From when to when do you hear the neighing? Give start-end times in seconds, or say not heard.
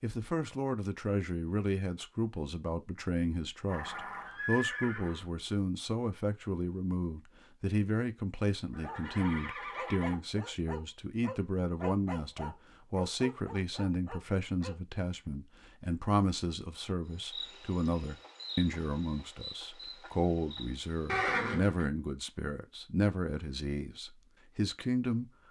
3.6-5.2, 8.7-10.2, 21.1-21.9.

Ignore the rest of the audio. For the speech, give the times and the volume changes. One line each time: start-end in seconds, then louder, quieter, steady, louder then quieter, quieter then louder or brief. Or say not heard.
0.0-25.2 steady.